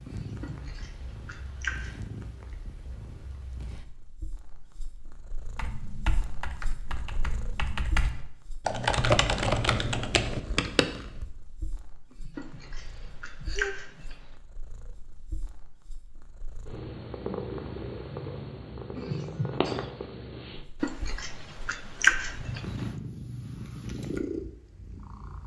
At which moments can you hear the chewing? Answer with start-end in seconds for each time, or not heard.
0.4-1.9, 12.3-14.2, 20.8-22.9.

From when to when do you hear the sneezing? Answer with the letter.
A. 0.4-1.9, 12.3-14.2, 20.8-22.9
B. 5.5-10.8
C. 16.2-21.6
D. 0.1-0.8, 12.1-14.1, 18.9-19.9
D.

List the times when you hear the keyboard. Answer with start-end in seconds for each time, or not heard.
5.5-10.8.